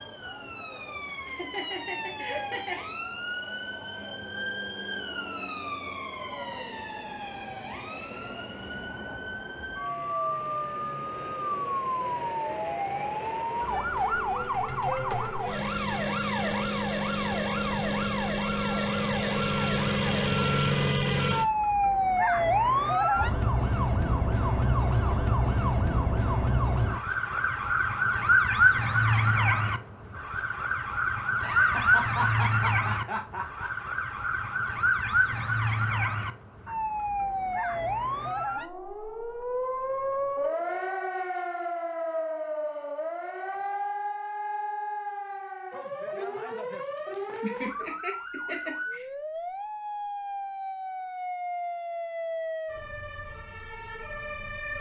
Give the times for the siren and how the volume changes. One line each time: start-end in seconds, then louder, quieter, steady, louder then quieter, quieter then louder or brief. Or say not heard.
0.0-54.7 louder then quieter.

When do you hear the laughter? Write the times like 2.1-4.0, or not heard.
1.1-2.8, 31.4-33.7, 46.8-49.0.